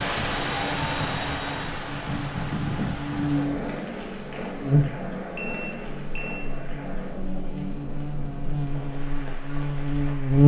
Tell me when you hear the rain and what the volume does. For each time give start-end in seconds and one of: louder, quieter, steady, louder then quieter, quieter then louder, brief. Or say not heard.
0.0-10.4 quieter.